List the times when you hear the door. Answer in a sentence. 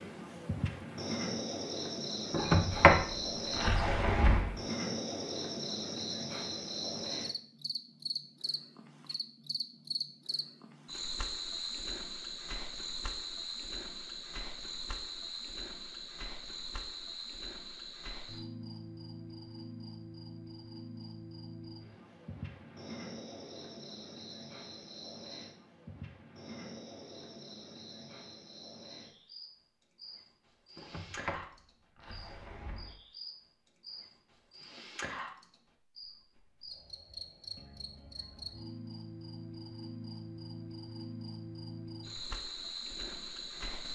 The door can be heard from 2.3 to 4.5 s and from 30.8 to 33.0 s.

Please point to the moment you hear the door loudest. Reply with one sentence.
The loudest moment of the door is at 3 seconds.